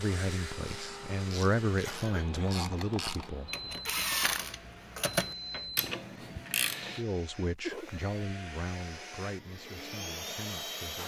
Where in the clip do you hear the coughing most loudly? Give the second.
8 s.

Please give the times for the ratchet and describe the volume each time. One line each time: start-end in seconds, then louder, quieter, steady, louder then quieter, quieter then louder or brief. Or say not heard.
0.6-7.0 louder.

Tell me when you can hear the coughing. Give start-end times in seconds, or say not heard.
1.8-2.6, 7.6-8.1.